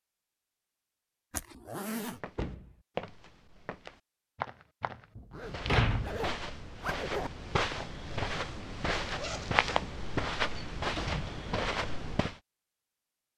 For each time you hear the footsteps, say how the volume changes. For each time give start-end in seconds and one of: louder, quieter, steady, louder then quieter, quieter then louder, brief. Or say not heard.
2.0-12.3 louder.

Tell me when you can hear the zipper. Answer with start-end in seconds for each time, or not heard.
1.3-2.2, 5.3-7.3, 9.0-9.6.